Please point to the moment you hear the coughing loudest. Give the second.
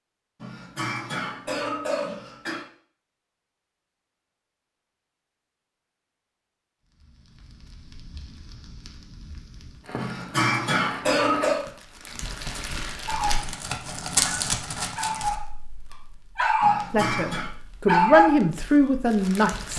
11 s.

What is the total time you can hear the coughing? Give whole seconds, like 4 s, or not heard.
5 s.